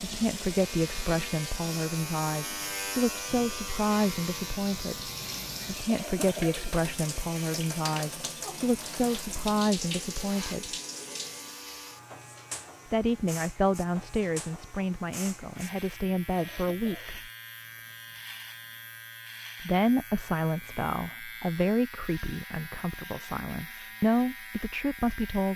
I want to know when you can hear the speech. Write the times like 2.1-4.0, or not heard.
0.0-10.8, 12.9-17.3, 19.6-25.5.